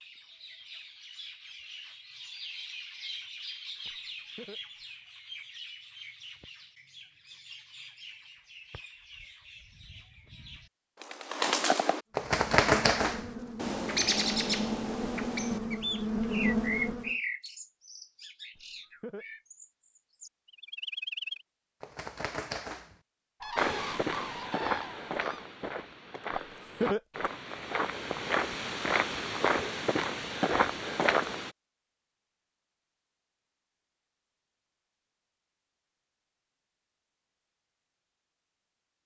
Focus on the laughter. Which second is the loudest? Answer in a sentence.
The loudest moment of the laughter is at 27 seconds.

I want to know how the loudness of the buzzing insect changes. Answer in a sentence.
The loudness of the buzzing insect goes up.